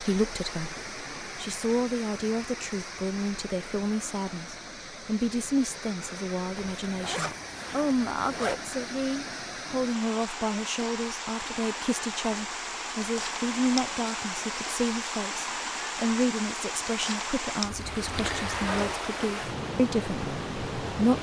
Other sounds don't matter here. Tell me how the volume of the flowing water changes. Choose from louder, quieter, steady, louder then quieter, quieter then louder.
louder.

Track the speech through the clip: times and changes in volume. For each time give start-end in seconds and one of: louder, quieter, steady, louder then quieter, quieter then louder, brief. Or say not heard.
0.0-21.1 steady.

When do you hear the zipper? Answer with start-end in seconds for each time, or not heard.
6.5-8.7, 17.6-19.0.